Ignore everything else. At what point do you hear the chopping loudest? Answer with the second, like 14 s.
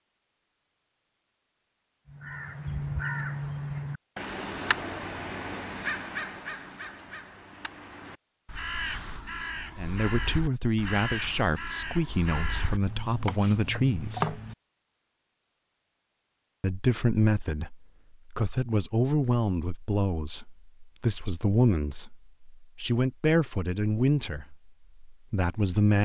14 s.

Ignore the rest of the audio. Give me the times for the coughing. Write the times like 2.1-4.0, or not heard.
not heard.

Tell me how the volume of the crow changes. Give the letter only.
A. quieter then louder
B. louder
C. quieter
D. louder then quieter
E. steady
A.